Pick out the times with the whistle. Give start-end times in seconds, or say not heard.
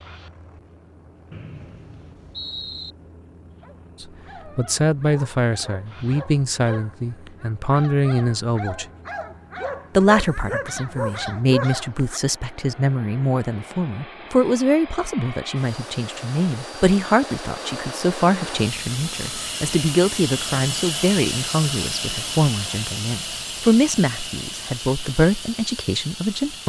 1.3-3.0.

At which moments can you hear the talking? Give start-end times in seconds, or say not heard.
4.0-8.8, 9.9-26.6.